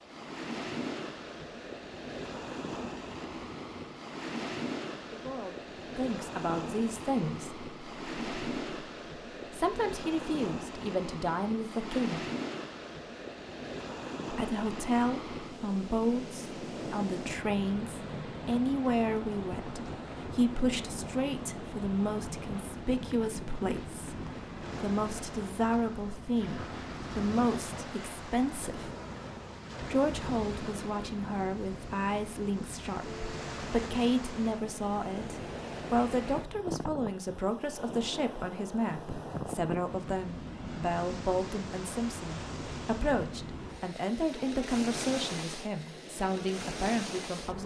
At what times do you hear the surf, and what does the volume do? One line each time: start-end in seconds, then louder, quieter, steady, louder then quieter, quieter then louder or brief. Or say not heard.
0.0-47.6 steady.